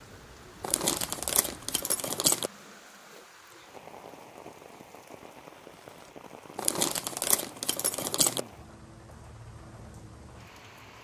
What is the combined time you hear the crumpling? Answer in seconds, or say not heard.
4 s.